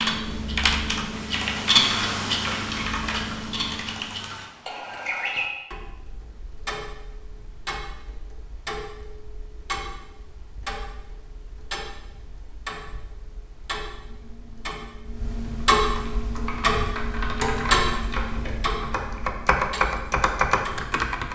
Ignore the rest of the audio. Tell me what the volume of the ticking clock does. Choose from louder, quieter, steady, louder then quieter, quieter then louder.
quieter then louder.